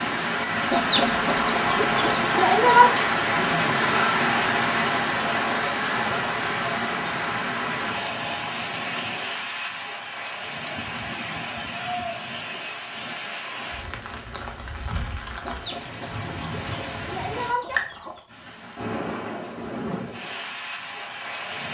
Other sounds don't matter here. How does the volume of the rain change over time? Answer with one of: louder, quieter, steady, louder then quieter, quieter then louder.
quieter.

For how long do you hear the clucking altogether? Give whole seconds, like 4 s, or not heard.
5 s.